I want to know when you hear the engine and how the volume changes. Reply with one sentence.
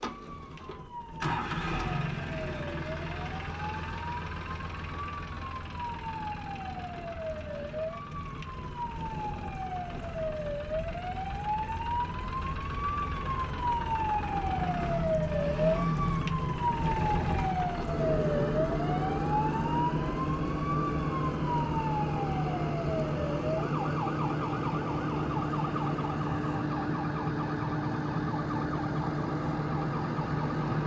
You can hear the engine from 0.0 to 30.8 s, getting quieter then louder.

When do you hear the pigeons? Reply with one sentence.
The pigeons can't be heard in this clip.